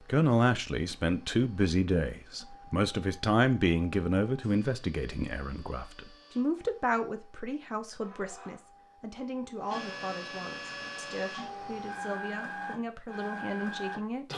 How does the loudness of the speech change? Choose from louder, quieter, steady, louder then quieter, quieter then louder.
quieter.